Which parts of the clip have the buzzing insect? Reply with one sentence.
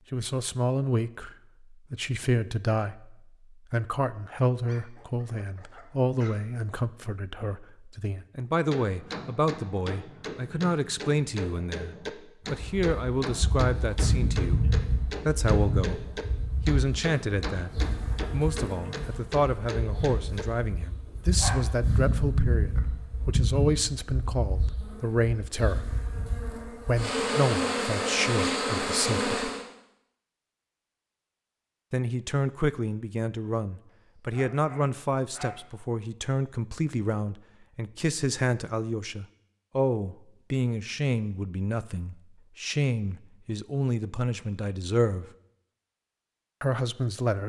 You can hear the buzzing insect from 12.6 to 29.6 s.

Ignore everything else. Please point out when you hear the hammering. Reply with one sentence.
The hammering can be heard from 8.7 to 20.4 s.